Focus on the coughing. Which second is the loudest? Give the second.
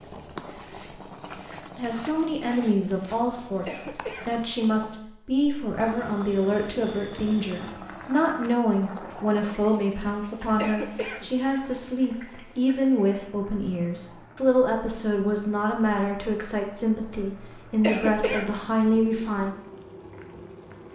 18 s.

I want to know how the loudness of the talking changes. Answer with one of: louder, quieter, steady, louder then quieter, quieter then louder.
steady.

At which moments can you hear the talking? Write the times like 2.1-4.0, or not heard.
1.8-19.5.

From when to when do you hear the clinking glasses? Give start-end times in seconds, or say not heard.
not heard.